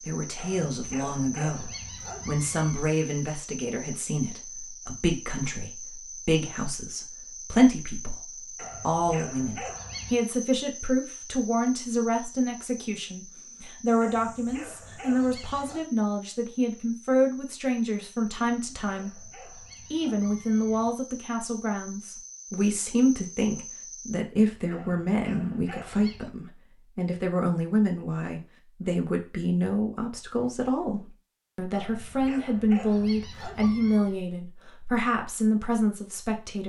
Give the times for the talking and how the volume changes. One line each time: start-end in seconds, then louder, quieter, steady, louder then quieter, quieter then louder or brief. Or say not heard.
0.1-19.3 steady
19.9-36.6 steady.